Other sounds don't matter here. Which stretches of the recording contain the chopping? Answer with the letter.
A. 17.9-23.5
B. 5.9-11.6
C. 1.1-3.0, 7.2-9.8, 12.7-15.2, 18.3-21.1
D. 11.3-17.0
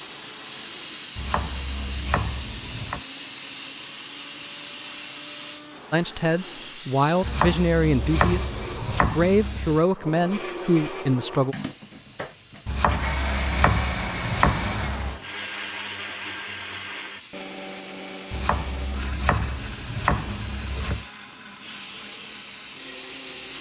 C.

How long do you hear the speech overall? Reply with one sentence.
The speech can be heard for 6 seconds in total.